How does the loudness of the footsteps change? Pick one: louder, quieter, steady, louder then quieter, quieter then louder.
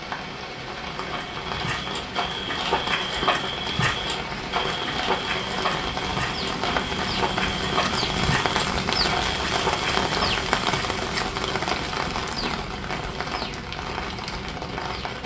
steady.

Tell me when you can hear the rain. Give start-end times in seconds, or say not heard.
0.0-15.2.